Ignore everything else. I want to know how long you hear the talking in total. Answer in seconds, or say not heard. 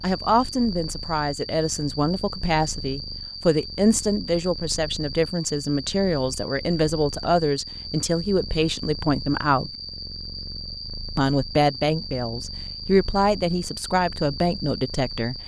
14 s.